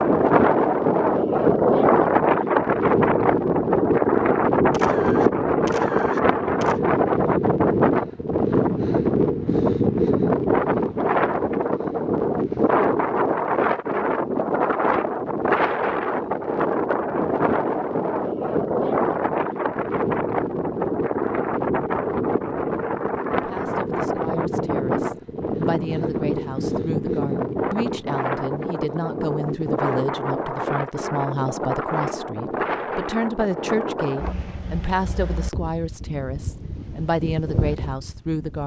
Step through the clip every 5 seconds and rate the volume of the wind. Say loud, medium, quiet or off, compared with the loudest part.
loud, loud, loud, medium, medium, medium, medium, quiet.